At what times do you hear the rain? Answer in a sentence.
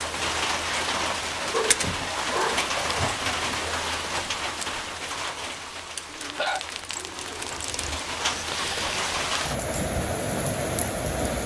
You can hear the rain from 0.0 to 11.4 s.